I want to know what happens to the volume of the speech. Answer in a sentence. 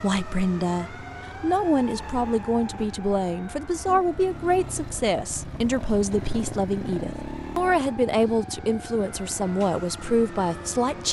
The loudness of the speech stays about the same.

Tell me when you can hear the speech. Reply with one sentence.
The speech can be heard from 0.0 to 11.0 s.